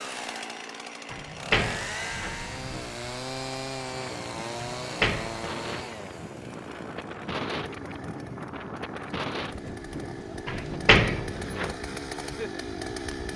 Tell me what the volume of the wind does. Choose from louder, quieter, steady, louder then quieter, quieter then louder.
louder then quieter.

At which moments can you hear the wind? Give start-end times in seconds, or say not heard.
2.0-13.3.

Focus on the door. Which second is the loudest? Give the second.
11 s.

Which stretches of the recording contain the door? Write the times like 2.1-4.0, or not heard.
1.1-2.4, 4.8-5.8, 10.4-11.8.